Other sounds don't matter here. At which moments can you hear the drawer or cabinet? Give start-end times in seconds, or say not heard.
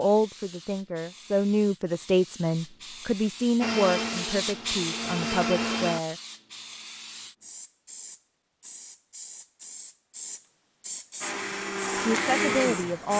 not heard.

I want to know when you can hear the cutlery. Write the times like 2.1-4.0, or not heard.
not heard.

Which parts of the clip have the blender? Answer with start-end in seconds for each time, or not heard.
3.6-6.0, 11.2-13.1.